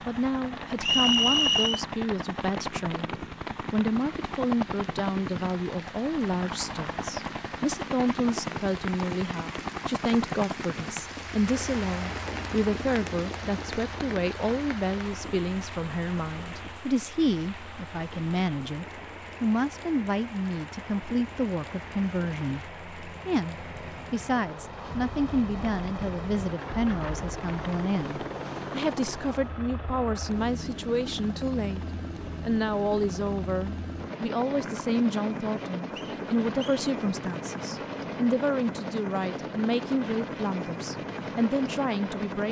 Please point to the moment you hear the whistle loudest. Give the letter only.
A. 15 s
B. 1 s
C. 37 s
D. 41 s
B.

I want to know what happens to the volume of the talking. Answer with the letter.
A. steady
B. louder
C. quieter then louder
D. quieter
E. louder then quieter
A.